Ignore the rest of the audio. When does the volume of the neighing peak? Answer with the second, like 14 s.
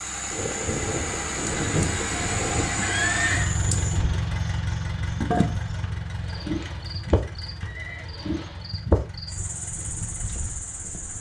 3 s.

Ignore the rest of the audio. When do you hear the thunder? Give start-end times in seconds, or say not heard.
0.3-4.2.